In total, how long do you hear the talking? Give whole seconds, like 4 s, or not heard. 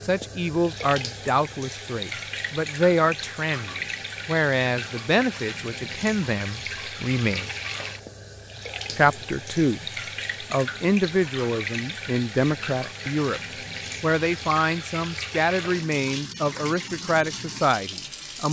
16 s.